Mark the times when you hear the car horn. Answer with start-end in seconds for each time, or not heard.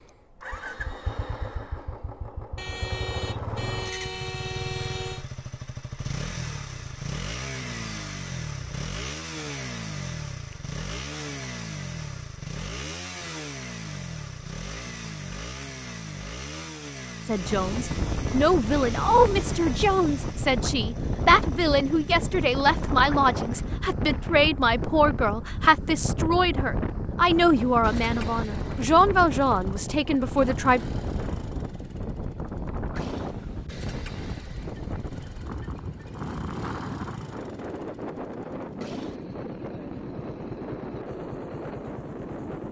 2.5-5.2.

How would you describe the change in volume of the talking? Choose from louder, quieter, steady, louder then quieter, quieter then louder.
steady.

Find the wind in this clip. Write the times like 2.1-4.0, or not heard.
17.4-42.6.